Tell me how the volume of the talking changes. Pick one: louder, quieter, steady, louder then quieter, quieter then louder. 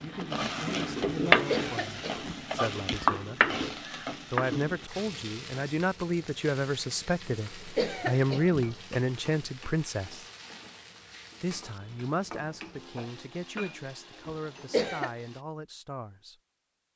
louder then quieter.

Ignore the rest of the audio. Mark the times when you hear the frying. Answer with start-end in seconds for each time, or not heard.
0.0-15.4.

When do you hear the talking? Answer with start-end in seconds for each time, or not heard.
0.0-3.5, 4.3-10.2, 11.4-16.4.